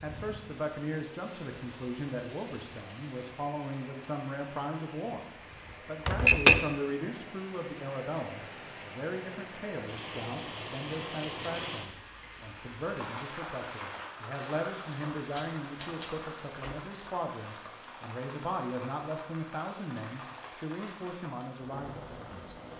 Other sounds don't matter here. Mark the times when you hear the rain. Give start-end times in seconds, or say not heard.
0.0-22.7.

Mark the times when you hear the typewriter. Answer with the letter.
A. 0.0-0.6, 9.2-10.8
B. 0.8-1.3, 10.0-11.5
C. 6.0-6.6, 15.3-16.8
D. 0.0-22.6
C.